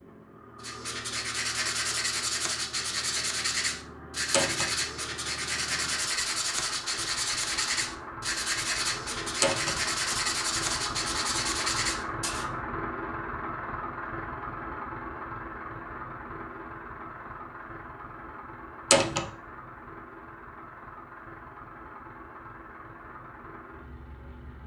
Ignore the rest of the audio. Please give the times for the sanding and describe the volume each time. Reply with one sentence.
The sanding can be heard from 0.6 to 12.4 s, at a steady volume.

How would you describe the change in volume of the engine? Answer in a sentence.
The volume of the engine goes up, then down.